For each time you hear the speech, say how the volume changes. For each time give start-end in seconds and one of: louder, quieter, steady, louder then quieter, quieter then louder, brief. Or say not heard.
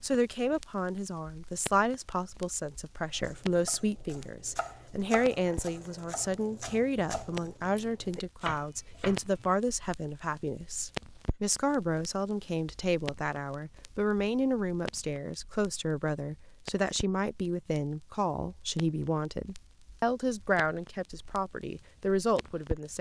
0.0-22.9 steady.